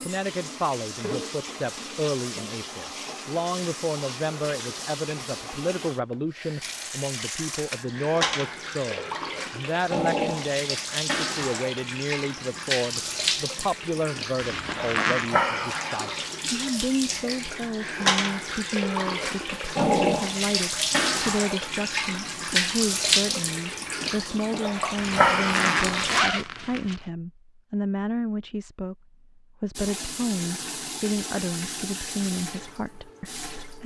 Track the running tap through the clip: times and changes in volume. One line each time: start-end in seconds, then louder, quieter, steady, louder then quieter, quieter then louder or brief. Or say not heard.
0.0-26.2 louder
29.8-33.8 quieter.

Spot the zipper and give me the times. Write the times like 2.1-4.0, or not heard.
14.3-15.3, 24.9-27.0.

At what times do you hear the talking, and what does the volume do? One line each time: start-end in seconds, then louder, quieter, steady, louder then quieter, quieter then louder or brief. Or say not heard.
0.0-33.8 steady.